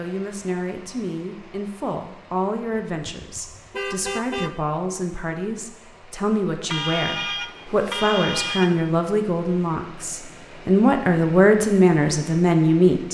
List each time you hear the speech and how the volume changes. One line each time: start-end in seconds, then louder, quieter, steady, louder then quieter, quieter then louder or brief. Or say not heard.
0.0-13.0 louder.